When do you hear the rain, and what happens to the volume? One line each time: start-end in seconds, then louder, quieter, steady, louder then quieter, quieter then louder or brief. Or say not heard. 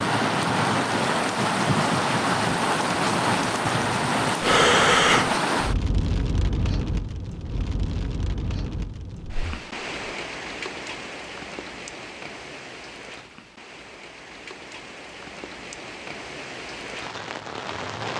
0.0-18.1 quieter.